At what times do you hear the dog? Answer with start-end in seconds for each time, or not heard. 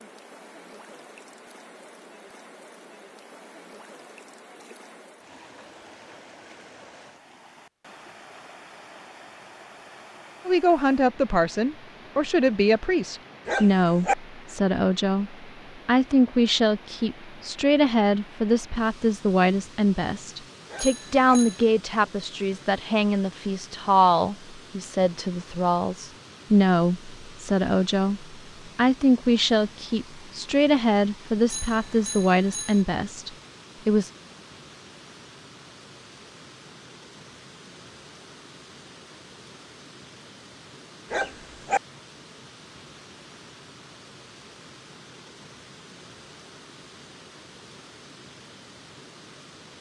13.4-14.2, 20.6-21.4, 41.1-41.8.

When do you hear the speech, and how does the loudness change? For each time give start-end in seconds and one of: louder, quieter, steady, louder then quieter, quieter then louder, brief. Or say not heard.
10.4-34.1 steady.